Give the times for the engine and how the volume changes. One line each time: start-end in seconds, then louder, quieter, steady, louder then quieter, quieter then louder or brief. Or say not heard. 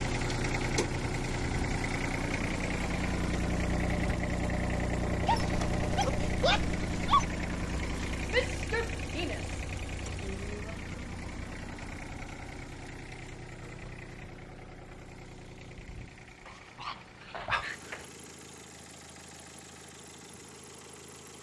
0.0-21.3 quieter.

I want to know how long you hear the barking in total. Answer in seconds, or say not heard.
4 s.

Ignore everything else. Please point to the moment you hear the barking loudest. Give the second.
7 s.